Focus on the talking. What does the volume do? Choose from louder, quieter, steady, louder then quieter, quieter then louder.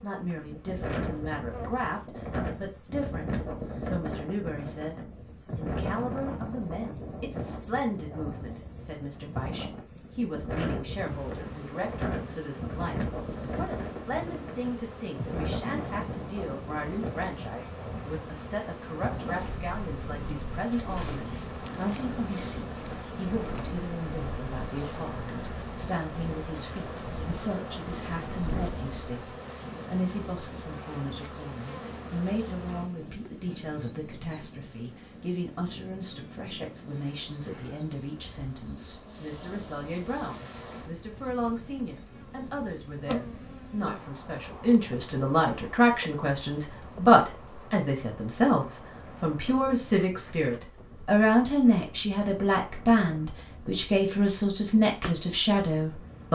louder.